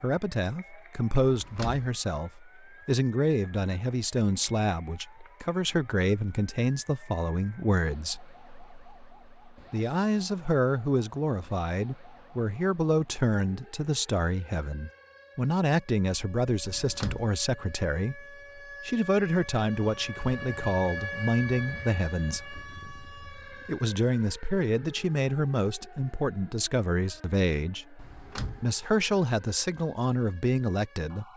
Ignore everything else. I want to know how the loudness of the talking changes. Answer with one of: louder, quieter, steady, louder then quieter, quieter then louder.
steady.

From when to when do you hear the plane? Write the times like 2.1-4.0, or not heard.
not heard.